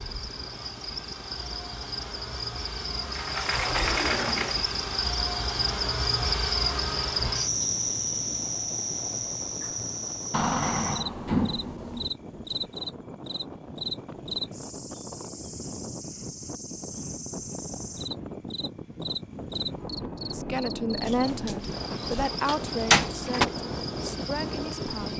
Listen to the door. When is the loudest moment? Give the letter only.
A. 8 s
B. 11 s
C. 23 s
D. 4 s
C.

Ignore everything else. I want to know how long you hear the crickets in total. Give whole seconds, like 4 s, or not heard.
25 s.